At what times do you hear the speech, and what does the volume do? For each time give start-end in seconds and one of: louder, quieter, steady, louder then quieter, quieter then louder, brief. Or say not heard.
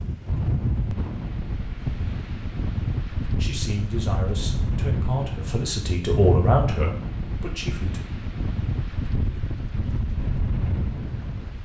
3.4-8.0 louder then quieter.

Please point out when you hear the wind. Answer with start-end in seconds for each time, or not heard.
0.0-11.6.